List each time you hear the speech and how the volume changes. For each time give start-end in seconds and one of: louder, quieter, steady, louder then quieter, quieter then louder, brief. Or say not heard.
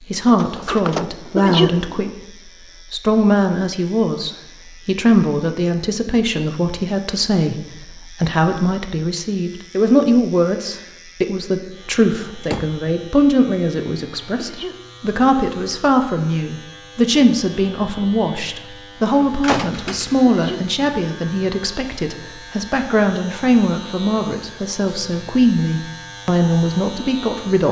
0.0-2.3 brief
2.9-27.6 steady.